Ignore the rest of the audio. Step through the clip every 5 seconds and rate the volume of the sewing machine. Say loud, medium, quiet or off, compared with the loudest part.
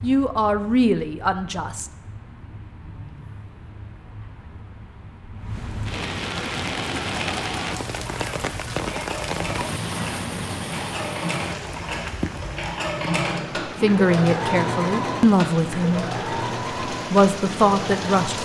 off, medium, loud, loud.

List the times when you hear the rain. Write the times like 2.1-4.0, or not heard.
0.0-18.4.